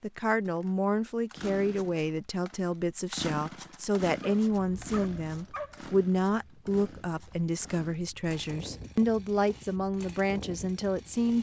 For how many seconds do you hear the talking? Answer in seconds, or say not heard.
11 s.